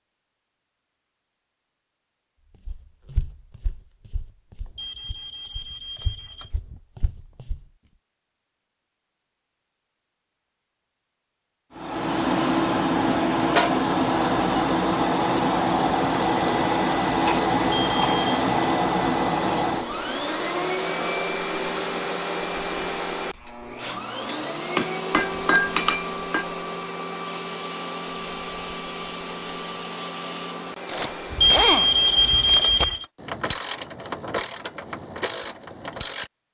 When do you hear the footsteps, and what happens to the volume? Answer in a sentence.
The footsteps can be heard from 2.6 to 7.7 s, getting quieter then louder.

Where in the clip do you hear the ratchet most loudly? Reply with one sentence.
The volume of the ratchet peaks at 32 seconds.